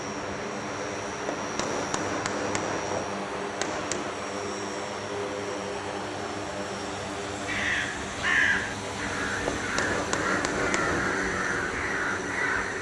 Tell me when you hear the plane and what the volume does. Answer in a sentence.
You can hear the plane from 0.0 to 12.7 s, at a steady volume.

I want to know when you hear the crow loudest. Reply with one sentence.
The volume of the crow peaks at 8 seconds.